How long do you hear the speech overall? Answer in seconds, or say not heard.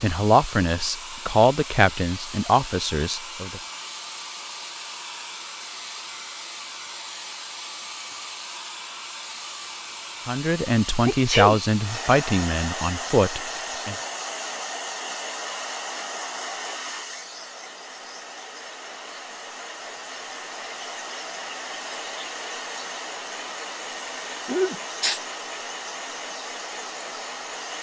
7 s.